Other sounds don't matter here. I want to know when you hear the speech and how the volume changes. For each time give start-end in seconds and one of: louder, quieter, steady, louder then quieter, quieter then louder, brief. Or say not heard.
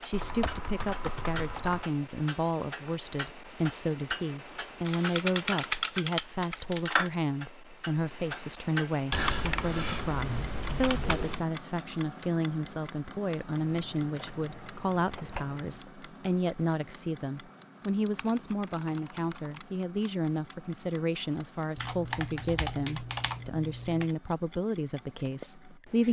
0.0-26.0 steady.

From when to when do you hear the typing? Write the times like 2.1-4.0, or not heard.
0.1-1.9, 4.8-7.1, 9.1-11.4, 13.6-15.8, 18.1-19.6, 21.8-24.1.